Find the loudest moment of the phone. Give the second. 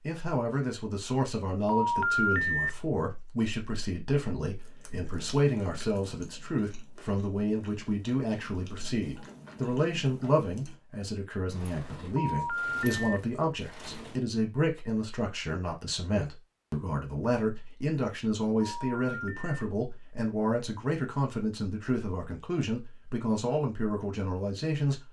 2 s.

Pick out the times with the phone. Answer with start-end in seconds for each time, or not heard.
1.6-2.7, 12.2-13.1, 18.6-19.5.